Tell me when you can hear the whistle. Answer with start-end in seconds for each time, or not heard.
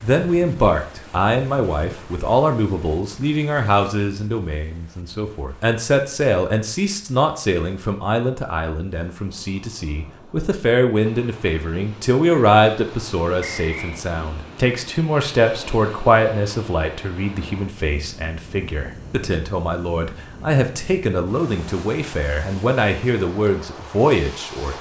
13.4-14.0.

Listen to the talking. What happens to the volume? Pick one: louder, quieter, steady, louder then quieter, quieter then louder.
steady.